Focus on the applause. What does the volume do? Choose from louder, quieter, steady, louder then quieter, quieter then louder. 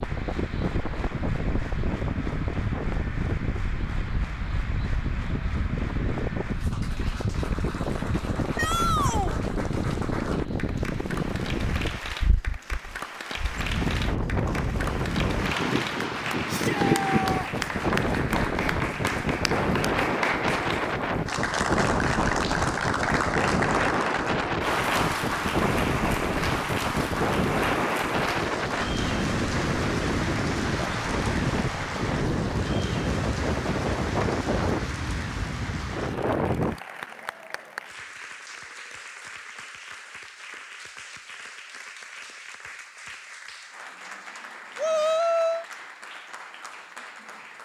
louder then quieter.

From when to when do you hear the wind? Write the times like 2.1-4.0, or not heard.
0.0-36.8.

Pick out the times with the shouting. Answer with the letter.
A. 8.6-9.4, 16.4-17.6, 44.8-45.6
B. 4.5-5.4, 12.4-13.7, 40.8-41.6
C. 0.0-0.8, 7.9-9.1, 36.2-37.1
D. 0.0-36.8
A.